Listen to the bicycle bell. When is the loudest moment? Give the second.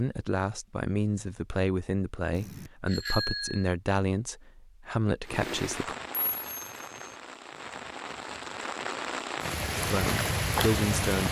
3 s.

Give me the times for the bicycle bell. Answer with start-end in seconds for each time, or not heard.
2.3-3.7, 6.3-7.2.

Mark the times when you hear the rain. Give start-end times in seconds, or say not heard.
5.2-11.2.